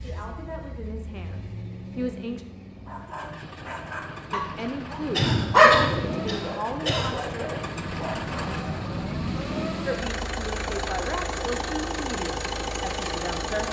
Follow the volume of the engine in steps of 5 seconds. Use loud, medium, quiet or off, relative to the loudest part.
medium, loud, loud.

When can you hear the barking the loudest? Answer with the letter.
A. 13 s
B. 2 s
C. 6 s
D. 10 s
C.